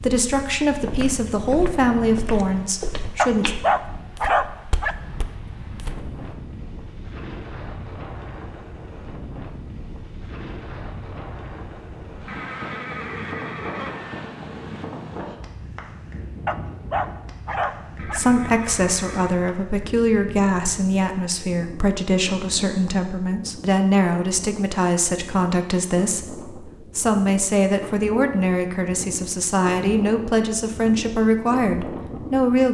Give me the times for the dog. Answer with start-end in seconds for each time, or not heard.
3.1-5.0, 16.4-18.2.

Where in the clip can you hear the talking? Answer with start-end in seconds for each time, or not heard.
0.0-3.5, 18.1-32.6.